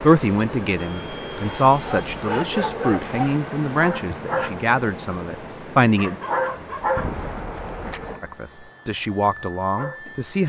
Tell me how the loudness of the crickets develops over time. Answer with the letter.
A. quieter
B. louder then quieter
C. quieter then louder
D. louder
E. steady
C.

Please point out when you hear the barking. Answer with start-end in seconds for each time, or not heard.
1.9-3.4, 6.0-7.0.